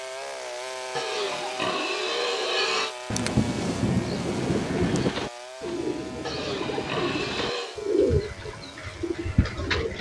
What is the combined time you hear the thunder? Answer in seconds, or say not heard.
2 s.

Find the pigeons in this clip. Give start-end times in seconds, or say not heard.
4.0-9.9.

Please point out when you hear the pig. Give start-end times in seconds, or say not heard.
0.9-3.0, 6.2-7.8.